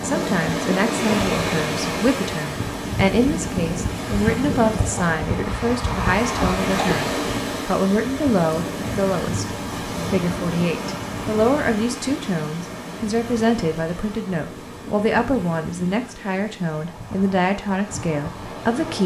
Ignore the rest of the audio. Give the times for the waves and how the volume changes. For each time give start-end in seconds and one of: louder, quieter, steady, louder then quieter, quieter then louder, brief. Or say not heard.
0.0-19.0 quieter.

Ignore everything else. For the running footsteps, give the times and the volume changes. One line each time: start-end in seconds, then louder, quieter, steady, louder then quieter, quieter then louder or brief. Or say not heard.
not heard.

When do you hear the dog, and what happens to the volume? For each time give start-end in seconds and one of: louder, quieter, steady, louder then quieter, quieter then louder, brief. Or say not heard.
not heard.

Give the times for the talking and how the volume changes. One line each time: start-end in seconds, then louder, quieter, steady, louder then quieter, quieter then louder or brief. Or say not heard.
0.0-19.0 steady.